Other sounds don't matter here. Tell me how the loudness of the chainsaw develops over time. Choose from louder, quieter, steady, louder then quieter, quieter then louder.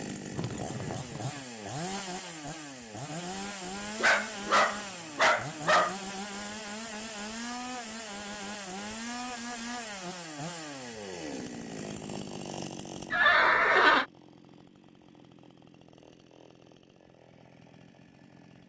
quieter.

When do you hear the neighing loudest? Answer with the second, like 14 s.
14 s.